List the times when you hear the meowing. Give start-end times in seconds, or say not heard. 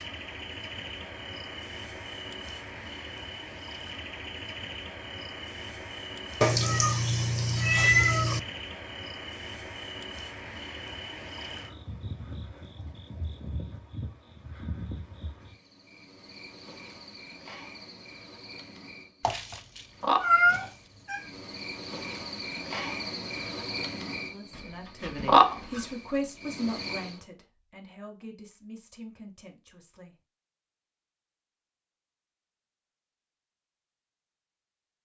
6.4-8.4, 19.2-21.2, 24.5-25.9.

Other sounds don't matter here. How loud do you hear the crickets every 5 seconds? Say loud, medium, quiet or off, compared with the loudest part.
quiet, quiet, quiet, quiet, medium, loud, off.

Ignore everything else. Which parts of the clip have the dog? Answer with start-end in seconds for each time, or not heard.
not heard.